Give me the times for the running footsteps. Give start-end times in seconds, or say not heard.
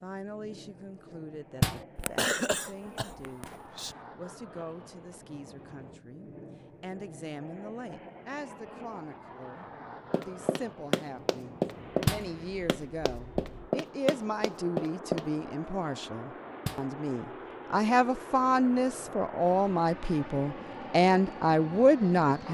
10.1-15.3.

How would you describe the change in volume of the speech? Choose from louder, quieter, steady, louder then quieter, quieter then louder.
louder.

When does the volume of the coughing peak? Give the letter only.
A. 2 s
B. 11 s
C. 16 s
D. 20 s
A.